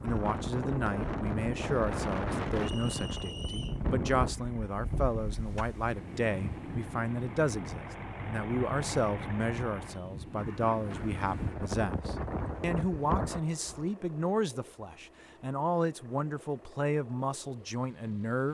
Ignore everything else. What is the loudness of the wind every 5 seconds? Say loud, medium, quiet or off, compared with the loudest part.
loud, medium, loud, off.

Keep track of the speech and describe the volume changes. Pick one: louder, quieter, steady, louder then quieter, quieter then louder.
steady.